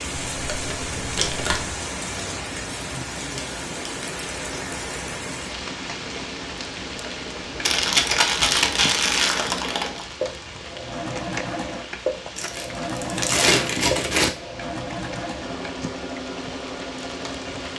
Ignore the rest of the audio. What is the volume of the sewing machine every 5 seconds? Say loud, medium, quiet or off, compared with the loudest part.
medium, medium, loud, loud.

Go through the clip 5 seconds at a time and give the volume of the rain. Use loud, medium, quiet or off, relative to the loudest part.
loud, loud, medium, medium.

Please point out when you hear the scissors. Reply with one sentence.
You can't hear the scissors here.